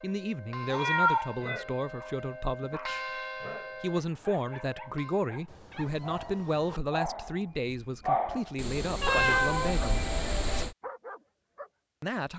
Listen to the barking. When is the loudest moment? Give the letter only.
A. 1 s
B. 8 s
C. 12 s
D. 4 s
B.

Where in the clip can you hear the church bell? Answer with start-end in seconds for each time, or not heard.
0.0-5.3.